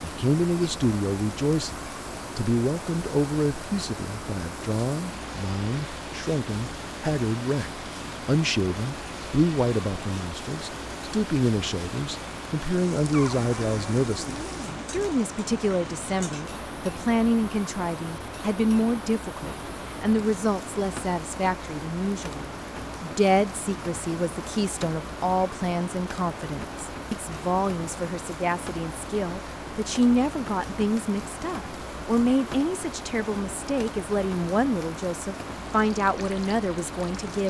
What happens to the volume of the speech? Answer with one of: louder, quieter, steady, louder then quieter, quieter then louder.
steady.